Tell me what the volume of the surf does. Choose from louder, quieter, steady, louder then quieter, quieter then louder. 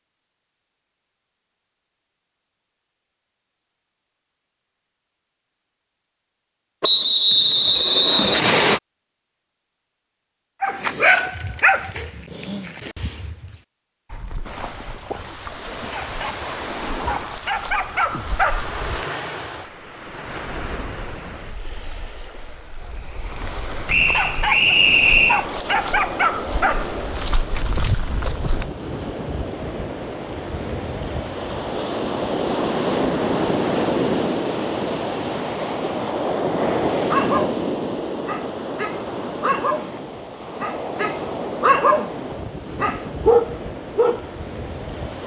louder then quieter.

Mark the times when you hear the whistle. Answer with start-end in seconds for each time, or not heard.
6.8-8.8, 23.9-25.4.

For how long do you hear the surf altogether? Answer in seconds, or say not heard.
31 s.